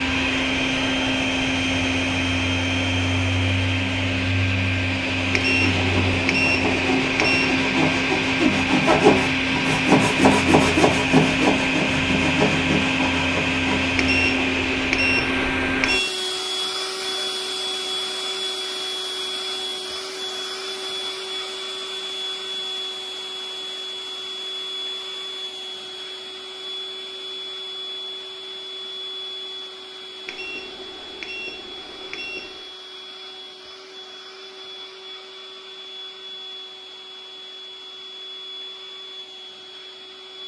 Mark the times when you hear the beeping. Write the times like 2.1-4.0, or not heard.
5.3-7.6, 13.9-16.1, 30.2-32.7.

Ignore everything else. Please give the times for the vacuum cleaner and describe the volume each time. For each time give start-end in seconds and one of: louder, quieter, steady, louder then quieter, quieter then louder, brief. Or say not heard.
0.0-40.4 quieter.